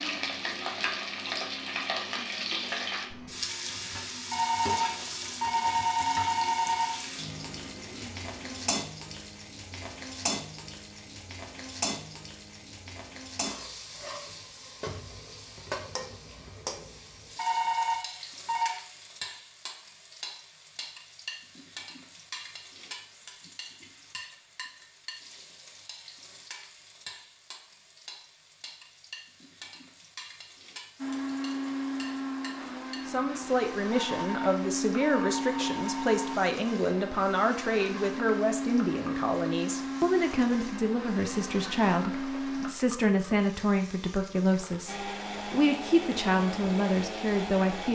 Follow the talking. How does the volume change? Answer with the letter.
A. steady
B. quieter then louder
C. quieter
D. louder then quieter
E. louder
A.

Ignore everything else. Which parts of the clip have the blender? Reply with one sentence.
You can hear the blender from 0.0 to 8.8 s, from 30.9 to 42.8 s and from 44.9 to 47.9 s.